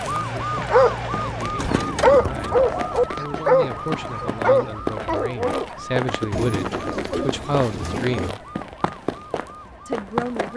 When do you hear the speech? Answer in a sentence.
You can hear the speech from 0.0 to 8.4 s and from 9.8 to 10.5 s.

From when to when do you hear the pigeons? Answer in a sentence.
The pigeons can be heard from 1.6 to 3.0 s and from 6.3 to 8.3 s.